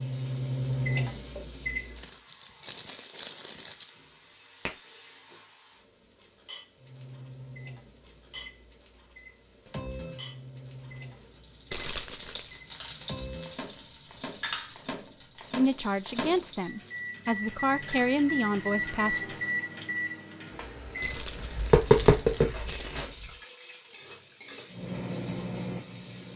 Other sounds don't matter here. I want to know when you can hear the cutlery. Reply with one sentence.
The cutlery can't be heard in this clip.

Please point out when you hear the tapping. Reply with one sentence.
You can hear the tapping from 21.0 to 23.2 s.